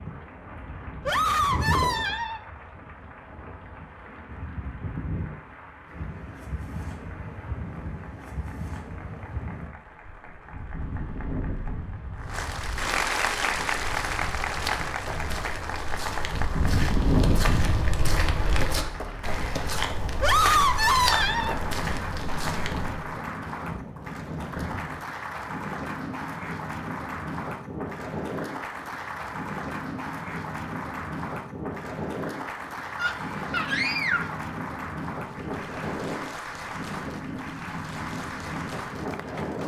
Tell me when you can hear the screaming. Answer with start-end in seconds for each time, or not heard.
1.1-2.4, 20.2-21.6, 33.0-34.4.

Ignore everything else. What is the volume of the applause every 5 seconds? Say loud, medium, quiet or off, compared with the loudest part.
quiet, quiet, loud, medium, medium, medium, medium, medium.